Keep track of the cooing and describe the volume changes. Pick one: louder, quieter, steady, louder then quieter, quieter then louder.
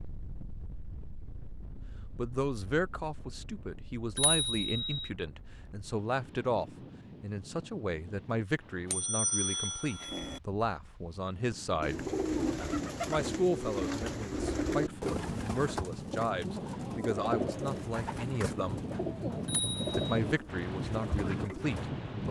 quieter.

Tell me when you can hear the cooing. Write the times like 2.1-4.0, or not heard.
11.5-21.9.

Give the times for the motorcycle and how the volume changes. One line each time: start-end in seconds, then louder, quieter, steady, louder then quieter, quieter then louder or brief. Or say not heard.
not heard.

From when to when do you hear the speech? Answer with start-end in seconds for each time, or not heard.
2.1-12.1, 13.1-18.8, 19.9-22.2.